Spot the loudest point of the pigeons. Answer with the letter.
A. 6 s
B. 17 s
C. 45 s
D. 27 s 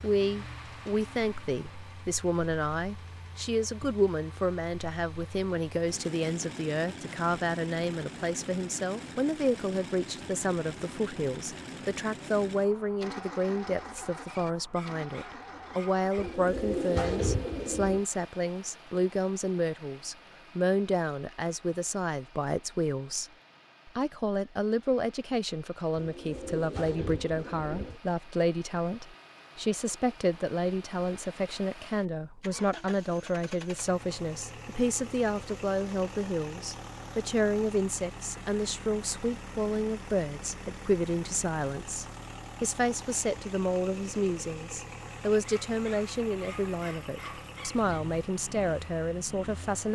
B.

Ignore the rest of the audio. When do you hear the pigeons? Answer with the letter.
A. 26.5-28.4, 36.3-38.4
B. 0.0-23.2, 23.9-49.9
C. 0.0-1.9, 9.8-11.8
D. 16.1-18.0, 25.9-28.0
D.